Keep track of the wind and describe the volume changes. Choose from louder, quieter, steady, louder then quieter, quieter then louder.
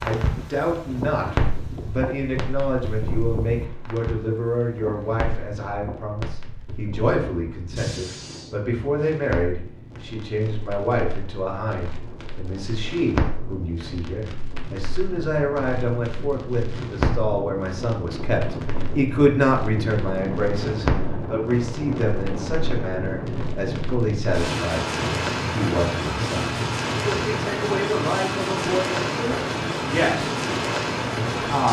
quieter then louder.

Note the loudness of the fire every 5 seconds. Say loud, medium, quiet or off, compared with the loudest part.
loud, medium, medium, medium, medium, loud, loud.